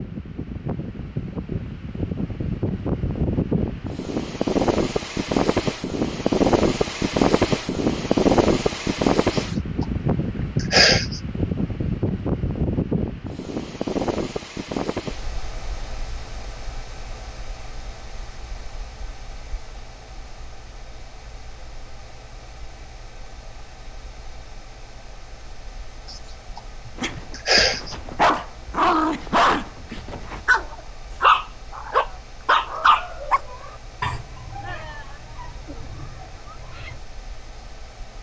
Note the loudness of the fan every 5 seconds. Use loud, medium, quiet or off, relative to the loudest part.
medium, loud, medium, quiet, quiet, quiet, quiet, quiet.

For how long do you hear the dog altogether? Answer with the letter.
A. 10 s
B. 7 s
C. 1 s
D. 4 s
A.